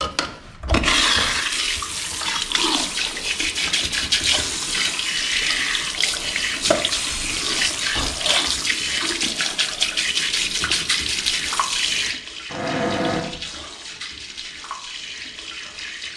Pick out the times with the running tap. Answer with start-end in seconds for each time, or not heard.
0.0-16.1.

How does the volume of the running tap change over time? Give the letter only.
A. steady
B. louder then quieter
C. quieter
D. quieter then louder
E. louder
C.